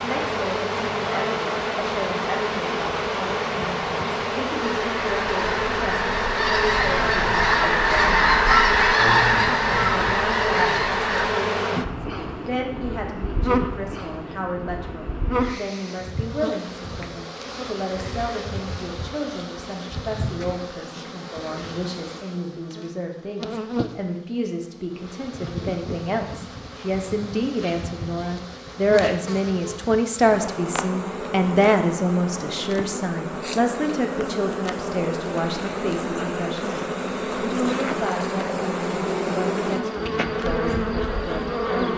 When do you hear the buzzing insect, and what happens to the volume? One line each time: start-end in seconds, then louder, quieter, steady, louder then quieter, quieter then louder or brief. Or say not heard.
0.0-41.9 quieter then louder.